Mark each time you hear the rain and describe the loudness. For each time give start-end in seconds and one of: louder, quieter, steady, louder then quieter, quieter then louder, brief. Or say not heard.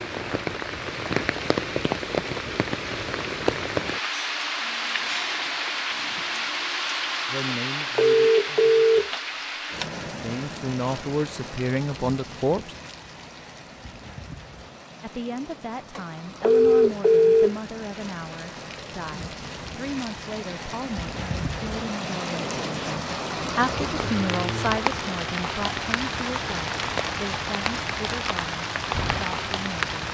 0.0-30.0 quieter then louder.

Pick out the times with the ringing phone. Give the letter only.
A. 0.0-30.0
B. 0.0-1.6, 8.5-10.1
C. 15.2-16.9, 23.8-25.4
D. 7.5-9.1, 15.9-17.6
D.